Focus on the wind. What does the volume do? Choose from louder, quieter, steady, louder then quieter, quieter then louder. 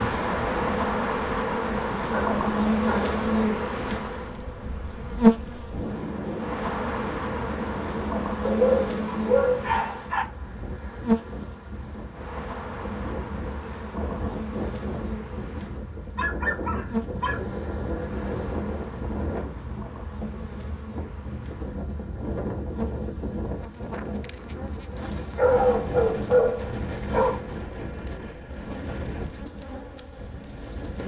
steady.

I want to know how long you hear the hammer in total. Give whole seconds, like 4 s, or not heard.
not heard.